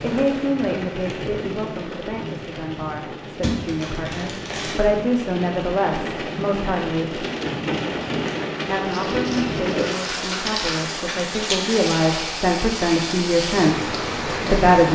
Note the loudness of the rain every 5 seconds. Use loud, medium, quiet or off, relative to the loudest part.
medium, loud, loud.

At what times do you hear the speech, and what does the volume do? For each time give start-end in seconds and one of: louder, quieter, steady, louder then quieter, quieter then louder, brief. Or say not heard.
0.0-7.2 quieter then louder
8.7-14.8 louder.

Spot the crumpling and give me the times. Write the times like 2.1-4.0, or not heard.
3.4-5.0, 8.9-10.8.